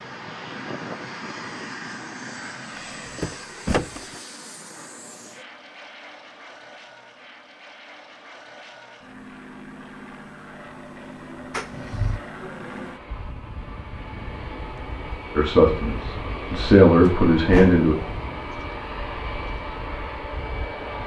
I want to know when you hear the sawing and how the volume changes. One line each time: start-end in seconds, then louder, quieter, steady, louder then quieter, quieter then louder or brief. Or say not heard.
not heard.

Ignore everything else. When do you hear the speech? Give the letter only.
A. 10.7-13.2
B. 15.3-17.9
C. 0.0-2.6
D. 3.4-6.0
B.